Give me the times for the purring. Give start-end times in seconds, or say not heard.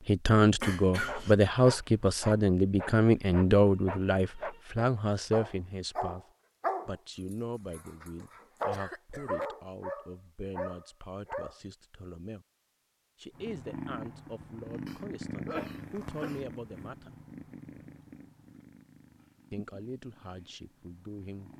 13.3-21.5.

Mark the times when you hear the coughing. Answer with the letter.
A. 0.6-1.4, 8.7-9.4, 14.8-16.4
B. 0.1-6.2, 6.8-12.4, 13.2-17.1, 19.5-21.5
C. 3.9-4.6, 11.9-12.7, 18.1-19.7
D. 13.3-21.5
A.